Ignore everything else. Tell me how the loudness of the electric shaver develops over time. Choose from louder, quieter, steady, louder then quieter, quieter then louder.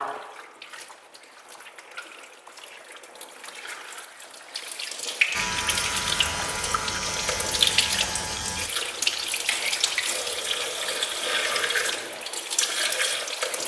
quieter.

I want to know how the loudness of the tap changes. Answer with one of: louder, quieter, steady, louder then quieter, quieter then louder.
louder.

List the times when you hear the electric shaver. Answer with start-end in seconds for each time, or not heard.
5.3-11.8.